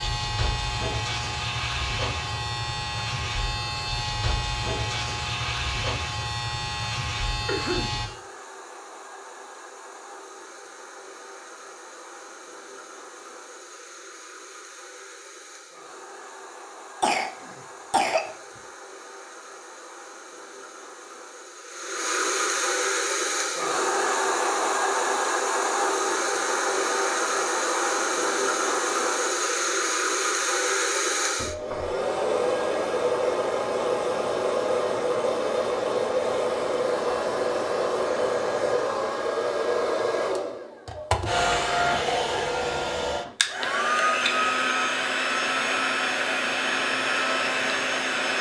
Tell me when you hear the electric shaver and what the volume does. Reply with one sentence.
You can hear the electric shaver from 0.0 to 8.1 s, at a steady volume.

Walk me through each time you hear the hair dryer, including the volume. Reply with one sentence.
You can hear the hair dryer from 0.0 to 48.3 s, getting louder.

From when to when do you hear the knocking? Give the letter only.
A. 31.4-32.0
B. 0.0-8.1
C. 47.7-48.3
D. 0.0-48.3
A.